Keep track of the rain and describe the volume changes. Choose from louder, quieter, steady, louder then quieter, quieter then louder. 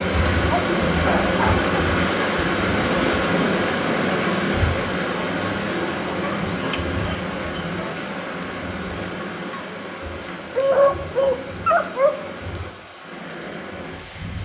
quieter.